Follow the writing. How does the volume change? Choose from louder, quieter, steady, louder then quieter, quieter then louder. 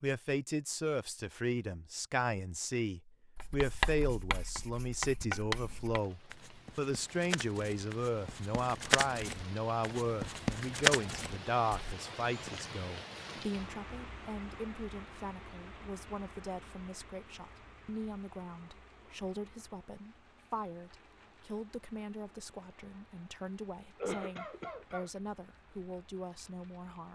quieter then louder.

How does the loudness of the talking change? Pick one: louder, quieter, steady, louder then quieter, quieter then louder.
quieter.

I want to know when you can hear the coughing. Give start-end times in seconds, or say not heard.
24.0-25.1.